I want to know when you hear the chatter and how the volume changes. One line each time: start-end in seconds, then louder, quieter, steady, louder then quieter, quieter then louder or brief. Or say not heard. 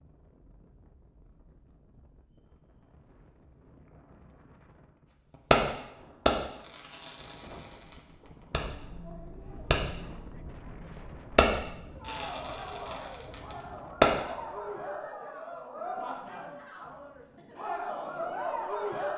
8.6-19.1 louder.